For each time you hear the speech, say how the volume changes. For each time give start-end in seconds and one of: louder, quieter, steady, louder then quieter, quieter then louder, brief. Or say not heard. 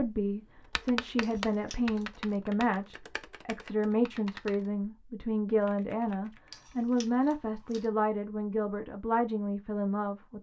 0.0-10.3 steady.